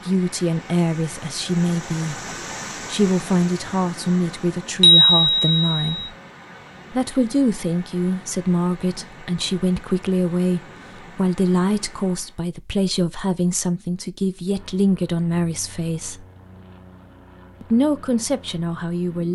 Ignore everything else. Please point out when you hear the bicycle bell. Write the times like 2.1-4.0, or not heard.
4.8-6.0.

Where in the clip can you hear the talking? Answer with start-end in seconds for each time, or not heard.
0.1-6.1, 6.9-16.2, 17.6-19.3.